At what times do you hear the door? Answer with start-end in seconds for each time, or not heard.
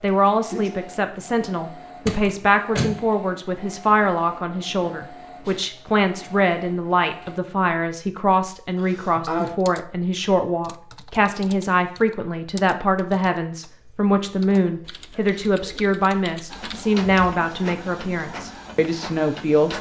2.0-3.0.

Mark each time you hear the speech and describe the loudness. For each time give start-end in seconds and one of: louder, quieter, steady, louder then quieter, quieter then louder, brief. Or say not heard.
0.0-19.7 steady.